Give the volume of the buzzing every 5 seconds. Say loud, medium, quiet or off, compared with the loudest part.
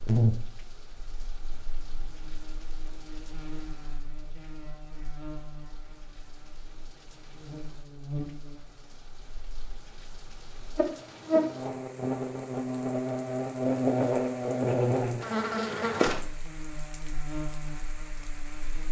medium, quiet, loud, medium.